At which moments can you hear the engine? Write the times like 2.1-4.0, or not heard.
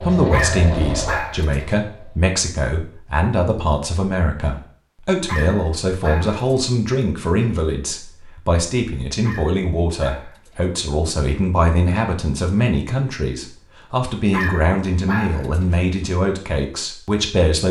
0.0-2.3.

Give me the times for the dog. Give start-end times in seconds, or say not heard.
0.3-1.8, 5.2-6.5, 9.2-10.8, 14.3-15.8.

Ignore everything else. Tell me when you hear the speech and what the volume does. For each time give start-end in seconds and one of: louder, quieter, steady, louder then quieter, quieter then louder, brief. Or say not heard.
0.0-17.6 steady.